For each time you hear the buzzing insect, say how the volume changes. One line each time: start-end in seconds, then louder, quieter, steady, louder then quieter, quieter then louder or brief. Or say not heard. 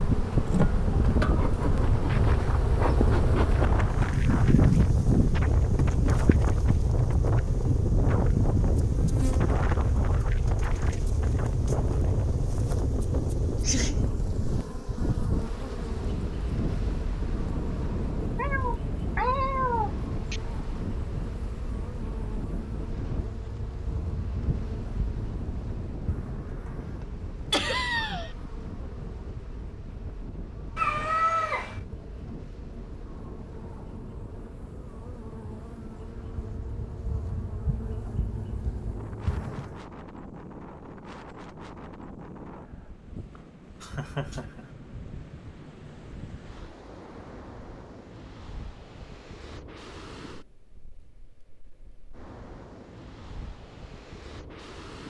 0.0-39.9 quieter.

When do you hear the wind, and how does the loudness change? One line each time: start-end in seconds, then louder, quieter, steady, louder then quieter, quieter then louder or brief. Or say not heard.
0.0-55.0 quieter.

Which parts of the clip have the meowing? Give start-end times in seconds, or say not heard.
18.4-20.4, 30.8-31.8.